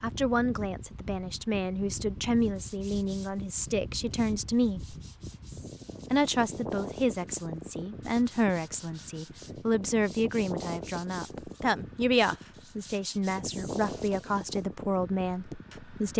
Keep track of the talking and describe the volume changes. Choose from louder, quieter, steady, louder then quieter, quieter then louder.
steady.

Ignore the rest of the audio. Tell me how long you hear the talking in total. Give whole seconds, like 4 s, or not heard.
15 s.